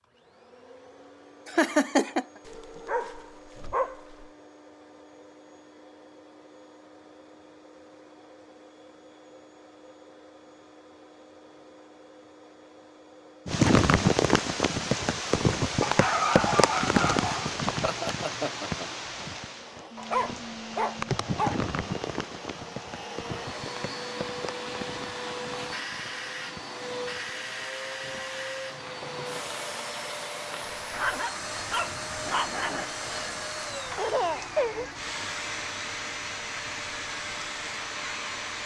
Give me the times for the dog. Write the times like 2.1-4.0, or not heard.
2.5-4.3, 15.8-17.5, 19.9-21.6, 30.9-32.9.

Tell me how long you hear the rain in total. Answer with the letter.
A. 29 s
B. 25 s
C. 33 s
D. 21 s
B.